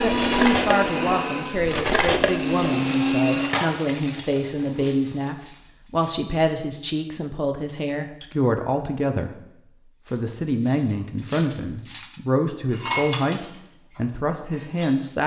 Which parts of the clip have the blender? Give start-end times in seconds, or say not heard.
0.0-3.5.